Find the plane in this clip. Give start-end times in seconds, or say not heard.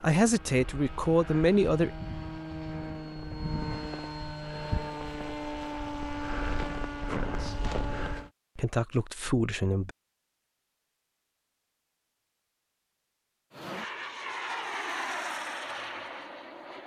0.0-8.3, 13.5-16.8.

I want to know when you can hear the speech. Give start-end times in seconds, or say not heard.
0.0-1.9, 7.1-7.6, 8.6-9.9.